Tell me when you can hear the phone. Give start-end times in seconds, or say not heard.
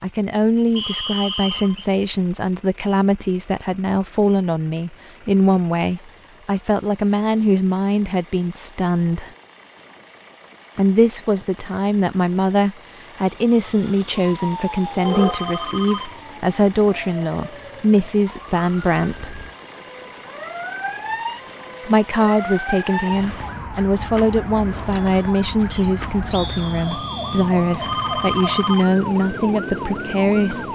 0.7-1.9, 15.1-16.2, 27.8-28.9.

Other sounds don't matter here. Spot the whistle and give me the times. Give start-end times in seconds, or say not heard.
0.8-1.8, 25.7-27.5.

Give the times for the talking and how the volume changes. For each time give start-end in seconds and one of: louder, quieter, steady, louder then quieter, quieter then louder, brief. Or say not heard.
0.0-9.3 steady
10.8-19.4 steady
21.9-30.7 steady.